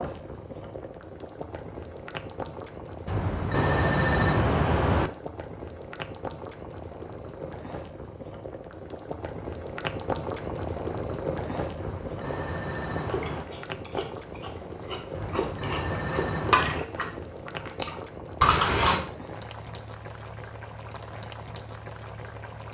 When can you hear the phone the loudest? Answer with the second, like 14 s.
4 s.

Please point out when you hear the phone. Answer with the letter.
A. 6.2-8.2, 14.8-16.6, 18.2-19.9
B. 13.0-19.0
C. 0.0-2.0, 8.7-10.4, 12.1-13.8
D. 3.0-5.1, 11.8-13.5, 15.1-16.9
D.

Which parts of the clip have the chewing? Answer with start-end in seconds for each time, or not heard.
13.0-19.0.